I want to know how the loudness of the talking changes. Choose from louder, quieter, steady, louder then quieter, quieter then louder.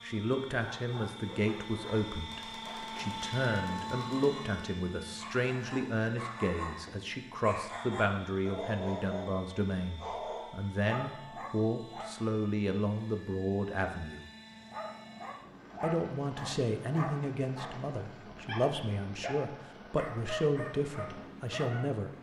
steady.